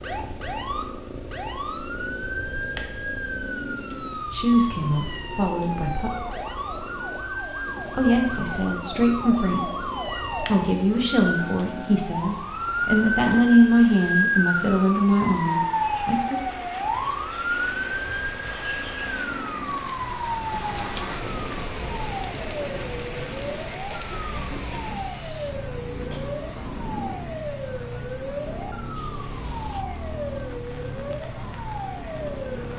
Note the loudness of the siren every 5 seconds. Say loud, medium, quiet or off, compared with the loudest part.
medium, medium, loud, loud, medium, medium, medium.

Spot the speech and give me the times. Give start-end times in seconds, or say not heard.
4.3-6.2, 7.9-16.4.